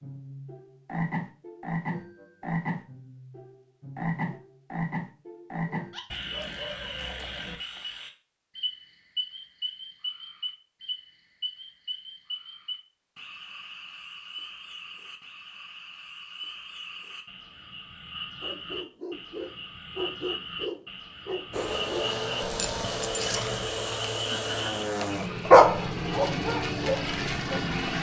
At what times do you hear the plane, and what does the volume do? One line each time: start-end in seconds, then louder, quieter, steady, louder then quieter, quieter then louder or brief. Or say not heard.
21.5-27.9 steady.